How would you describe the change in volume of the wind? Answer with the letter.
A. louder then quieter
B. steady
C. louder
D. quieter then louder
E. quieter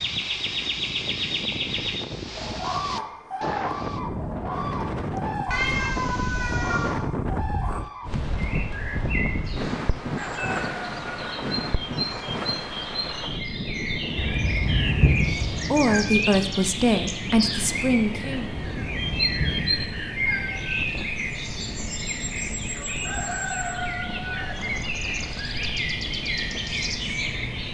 E.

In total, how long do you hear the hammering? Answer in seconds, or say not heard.
not heard.